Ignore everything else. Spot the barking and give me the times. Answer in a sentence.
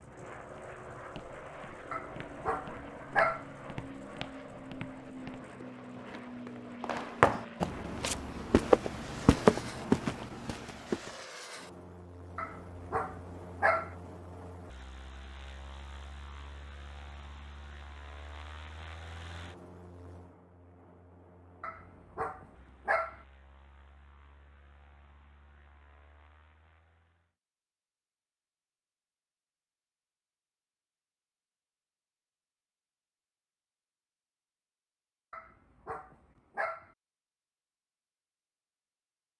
You can hear the barking from 1.9 to 3.5 s, from 12.3 to 13.9 s, from 21.6 to 23.2 s and from 35.3 to 36.9 s.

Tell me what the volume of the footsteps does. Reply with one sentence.
The loudness of the footsteps goes up.